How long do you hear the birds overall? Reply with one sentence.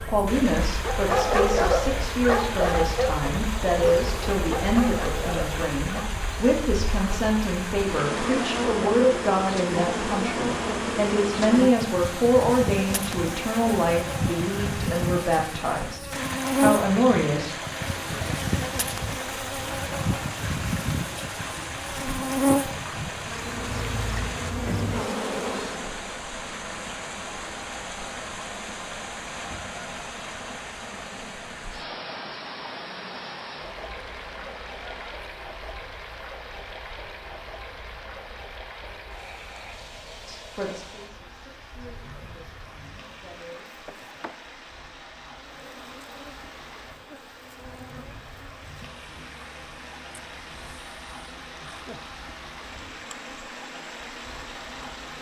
You can't hear the birds here.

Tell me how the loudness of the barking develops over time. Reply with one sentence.
The loudness of the barking goes down.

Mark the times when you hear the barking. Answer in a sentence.
You can hear the barking from 0.8 to 6.2 s.